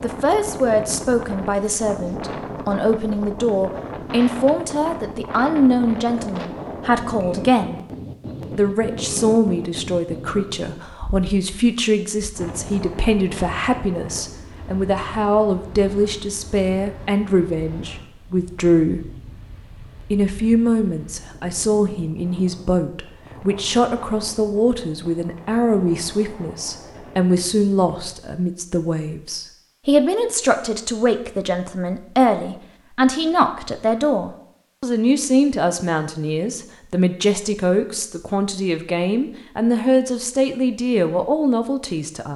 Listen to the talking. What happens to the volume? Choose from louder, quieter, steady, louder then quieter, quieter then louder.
steady.